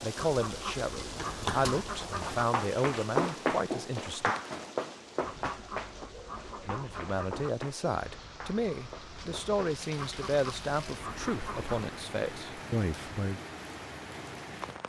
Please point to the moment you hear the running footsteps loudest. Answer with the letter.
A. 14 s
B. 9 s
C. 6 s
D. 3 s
D.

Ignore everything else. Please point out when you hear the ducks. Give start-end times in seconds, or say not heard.
0.1-2.5, 5.2-7.5, 9.9-11.8.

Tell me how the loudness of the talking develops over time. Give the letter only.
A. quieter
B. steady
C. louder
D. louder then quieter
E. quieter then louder
B.